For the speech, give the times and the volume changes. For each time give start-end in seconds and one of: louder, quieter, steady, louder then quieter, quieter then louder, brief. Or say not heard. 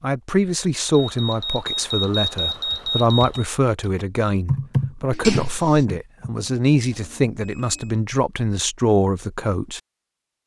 0.0-9.8 steady.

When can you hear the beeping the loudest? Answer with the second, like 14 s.
2 s.